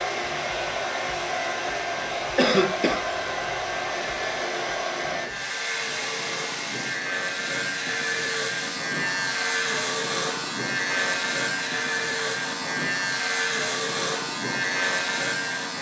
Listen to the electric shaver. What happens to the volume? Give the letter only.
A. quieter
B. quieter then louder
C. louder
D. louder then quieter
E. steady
C.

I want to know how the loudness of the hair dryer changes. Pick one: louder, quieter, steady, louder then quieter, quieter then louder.
quieter.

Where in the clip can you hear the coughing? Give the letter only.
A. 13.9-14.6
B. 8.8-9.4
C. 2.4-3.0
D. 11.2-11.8
C.